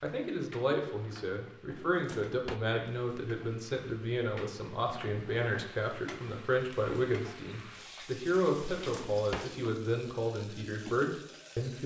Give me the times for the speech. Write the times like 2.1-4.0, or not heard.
0.0-11.8.